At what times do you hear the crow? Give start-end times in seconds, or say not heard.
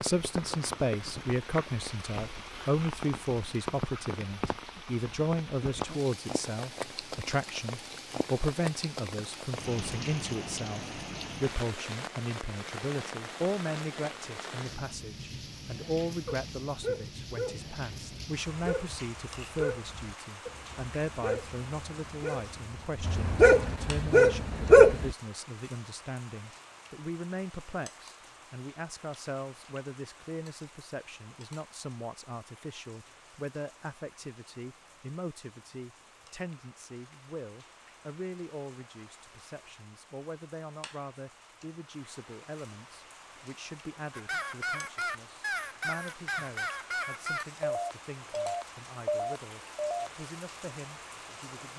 44.1-50.1.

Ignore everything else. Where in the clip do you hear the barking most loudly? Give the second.
25 s.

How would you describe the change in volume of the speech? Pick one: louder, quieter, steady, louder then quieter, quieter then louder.
quieter.